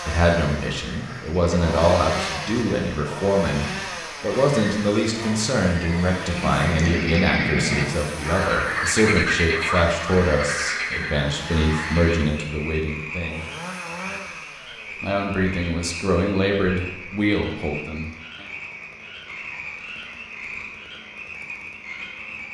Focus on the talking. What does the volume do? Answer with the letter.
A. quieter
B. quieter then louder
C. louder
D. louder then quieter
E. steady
E.